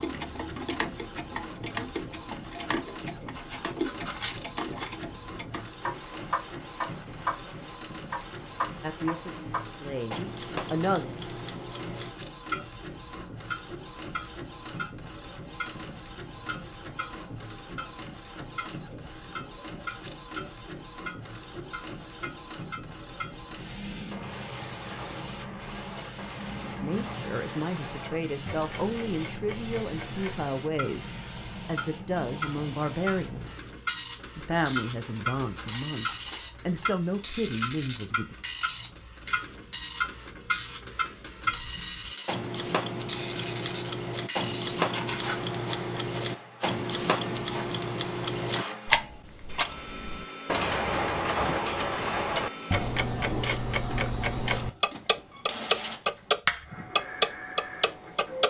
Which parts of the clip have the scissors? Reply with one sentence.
The scissors can be heard from 3.4 to 5.0 s, from 34.9 to 37.2 s and from 44.8 to 45.5 s.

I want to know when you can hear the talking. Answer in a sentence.
You can hear the talking from 8.8 to 11.1 s, from 26.8 to 33.7 s and from 34.4 to 38.4 s.